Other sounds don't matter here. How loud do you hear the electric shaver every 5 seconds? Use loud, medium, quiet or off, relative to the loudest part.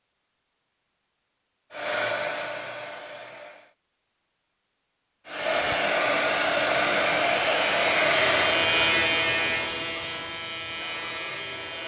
off, loud, medium.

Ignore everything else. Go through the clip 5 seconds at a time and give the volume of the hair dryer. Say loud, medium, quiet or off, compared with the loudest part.
medium, loud, off.